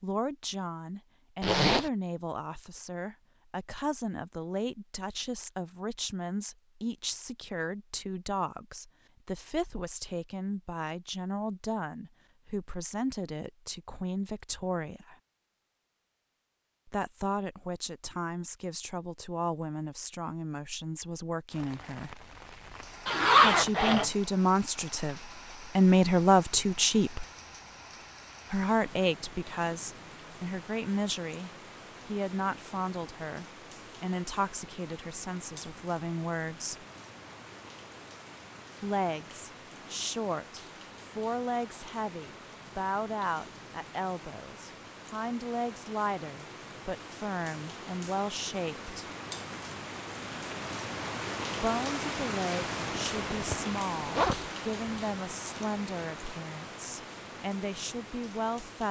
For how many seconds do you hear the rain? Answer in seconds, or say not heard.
37 s.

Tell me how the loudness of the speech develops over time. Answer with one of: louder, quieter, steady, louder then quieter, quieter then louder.
louder then quieter.